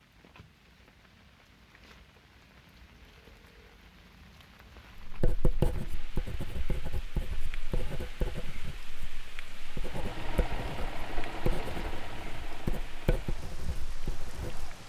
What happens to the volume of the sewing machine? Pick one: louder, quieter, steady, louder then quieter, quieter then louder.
quieter.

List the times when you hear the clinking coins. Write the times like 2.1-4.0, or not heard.
not heard.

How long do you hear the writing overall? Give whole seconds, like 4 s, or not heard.
10 s.